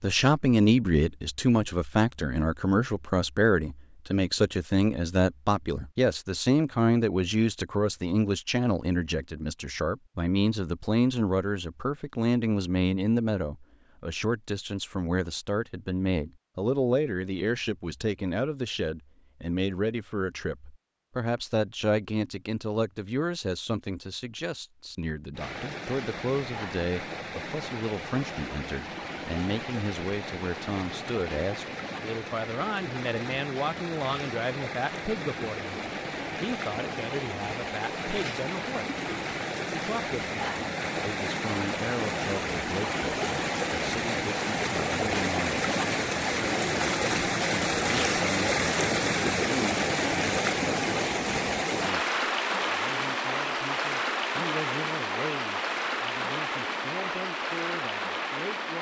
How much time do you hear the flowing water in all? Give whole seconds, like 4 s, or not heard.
33 s.